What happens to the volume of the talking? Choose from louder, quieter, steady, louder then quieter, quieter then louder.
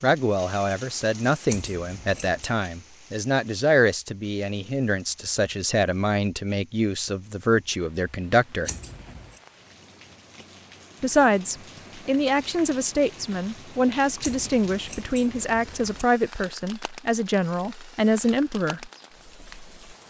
steady.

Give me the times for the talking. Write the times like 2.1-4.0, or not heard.
0.0-8.7, 11.0-18.9.